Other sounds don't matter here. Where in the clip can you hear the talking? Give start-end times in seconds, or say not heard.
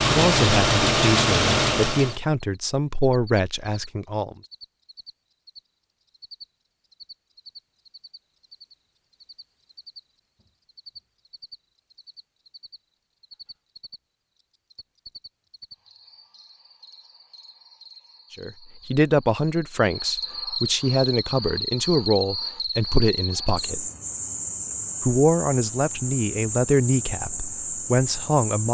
0.1-4.3, 18.4-23.9, 25.0-28.6.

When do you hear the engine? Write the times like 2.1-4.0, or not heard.
0.0-2.2.